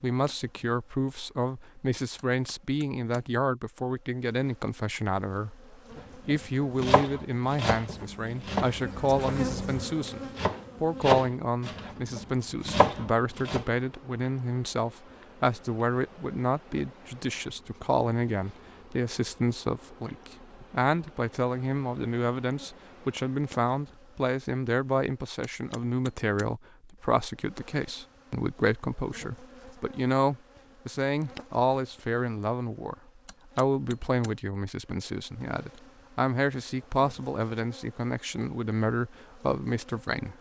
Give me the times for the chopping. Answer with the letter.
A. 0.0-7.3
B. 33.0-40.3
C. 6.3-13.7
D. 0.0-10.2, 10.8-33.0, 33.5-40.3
C.